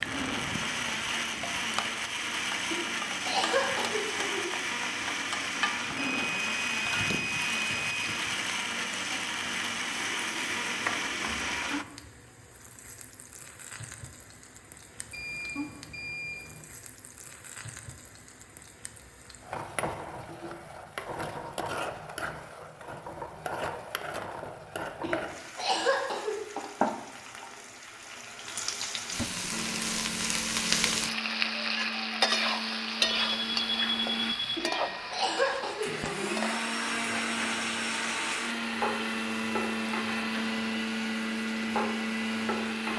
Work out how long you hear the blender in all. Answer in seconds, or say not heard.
25 s.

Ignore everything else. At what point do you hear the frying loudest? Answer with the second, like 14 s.
33 s.